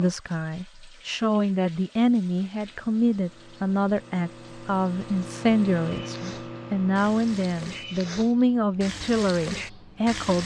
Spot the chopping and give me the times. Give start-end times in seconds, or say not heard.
not heard.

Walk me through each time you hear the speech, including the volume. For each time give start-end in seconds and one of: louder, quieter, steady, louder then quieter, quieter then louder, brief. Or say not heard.
0.0-10.4 steady.